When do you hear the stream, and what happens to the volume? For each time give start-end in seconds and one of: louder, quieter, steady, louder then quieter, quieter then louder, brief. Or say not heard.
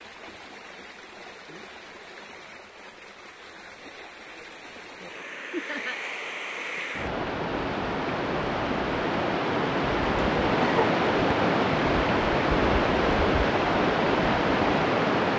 0.0-15.3 louder.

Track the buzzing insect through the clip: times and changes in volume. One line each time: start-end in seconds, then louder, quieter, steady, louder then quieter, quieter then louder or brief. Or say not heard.
not heard.